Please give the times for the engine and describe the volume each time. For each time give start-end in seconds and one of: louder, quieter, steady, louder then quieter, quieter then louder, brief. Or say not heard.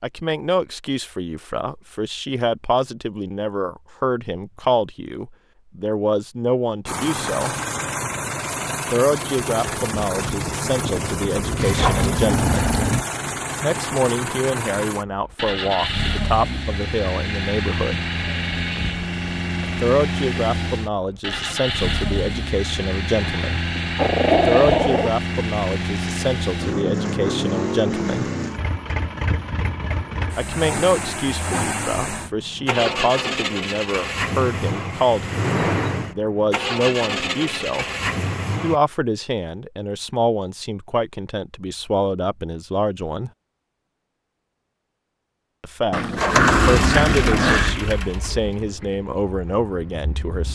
6.8-38.8 steady
46.1-50.5 quieter.